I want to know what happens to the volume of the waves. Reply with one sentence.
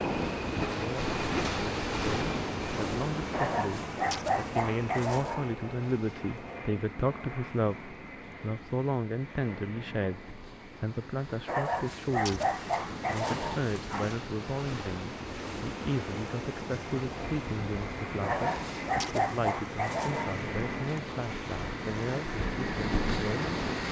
The volume of the waves goes down, then up.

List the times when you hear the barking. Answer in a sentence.
The barking can be heard from 3.3 to 5.5 s, from 11.4 to 14.3 s and from 18.2 to 20.4 s.